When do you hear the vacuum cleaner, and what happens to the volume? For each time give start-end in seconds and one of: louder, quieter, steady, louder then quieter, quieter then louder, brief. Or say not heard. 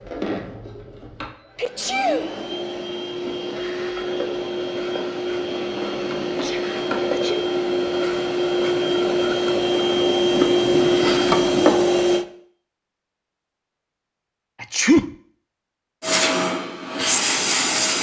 0.0-12.2 louder
16.0-17.9 brief.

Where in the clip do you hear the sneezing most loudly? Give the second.
15 s.